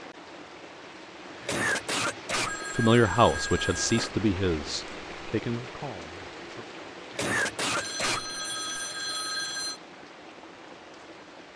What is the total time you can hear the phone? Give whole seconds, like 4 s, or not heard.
4 s.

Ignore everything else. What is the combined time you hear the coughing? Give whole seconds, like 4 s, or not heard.
3 s.